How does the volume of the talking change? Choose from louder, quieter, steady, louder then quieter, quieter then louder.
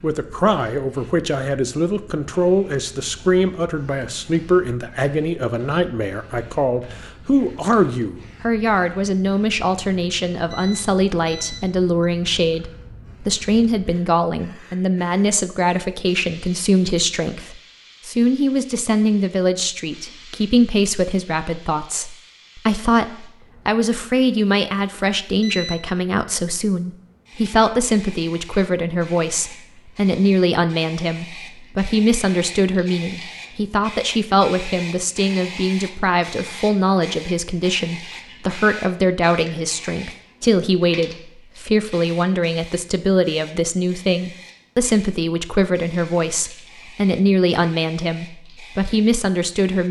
steady.